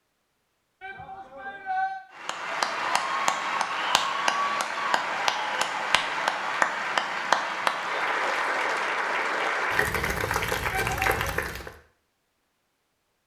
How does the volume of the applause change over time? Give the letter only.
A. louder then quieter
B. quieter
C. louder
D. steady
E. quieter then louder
D.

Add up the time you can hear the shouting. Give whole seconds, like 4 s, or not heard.
2 s.